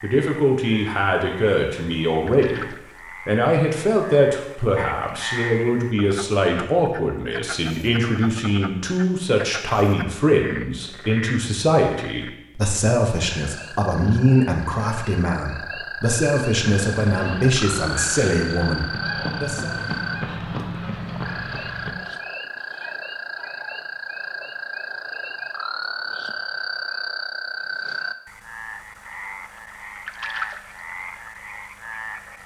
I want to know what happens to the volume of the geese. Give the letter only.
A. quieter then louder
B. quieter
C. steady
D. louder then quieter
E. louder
E.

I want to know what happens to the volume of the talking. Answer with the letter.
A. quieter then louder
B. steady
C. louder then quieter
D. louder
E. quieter
B.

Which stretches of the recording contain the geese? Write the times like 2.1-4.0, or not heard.
16.5-21.9.